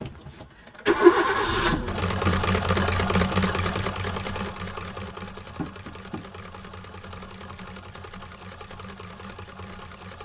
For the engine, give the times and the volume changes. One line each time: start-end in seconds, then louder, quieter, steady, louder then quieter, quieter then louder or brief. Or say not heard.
0.0-10.2 quieter.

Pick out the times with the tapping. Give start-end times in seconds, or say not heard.
1.7-2.4, 5.5-6.2.